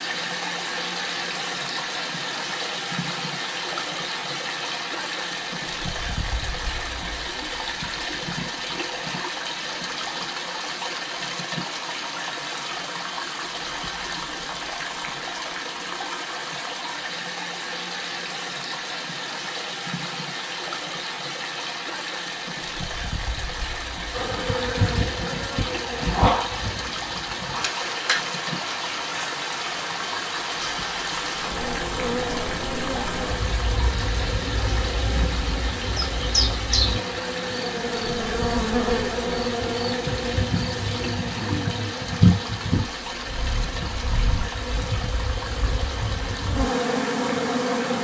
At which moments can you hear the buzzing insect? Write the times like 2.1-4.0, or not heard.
24.1-47.9.